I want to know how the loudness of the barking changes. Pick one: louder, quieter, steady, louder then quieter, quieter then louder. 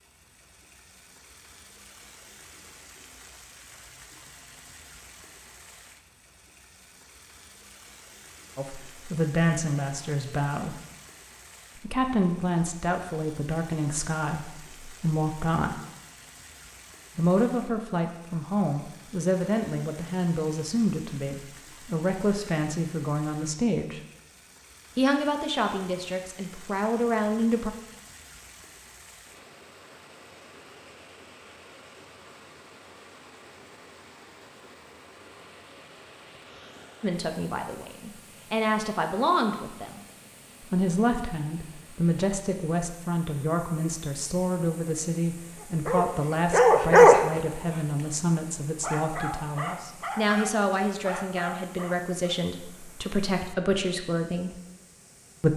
quieter.